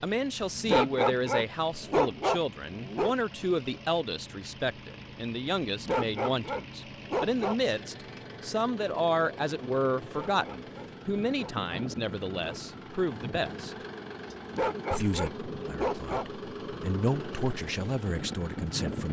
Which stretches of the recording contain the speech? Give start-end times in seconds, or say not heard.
0.0-13.8, 14.9-19.0.